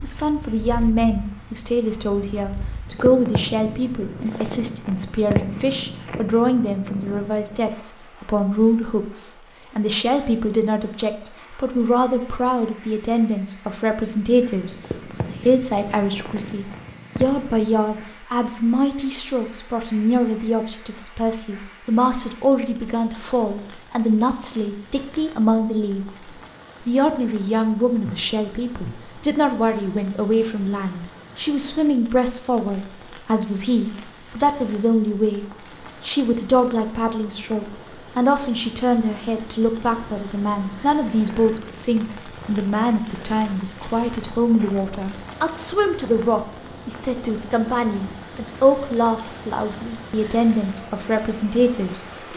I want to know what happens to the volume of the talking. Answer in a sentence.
The volume of the talking stays about the same.